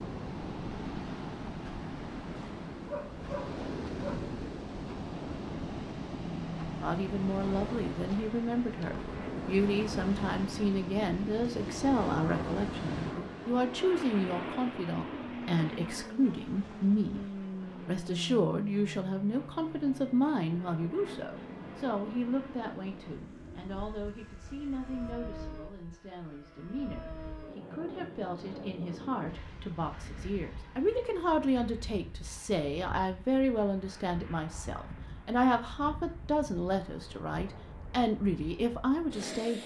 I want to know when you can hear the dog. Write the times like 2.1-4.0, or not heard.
2.9-4.3.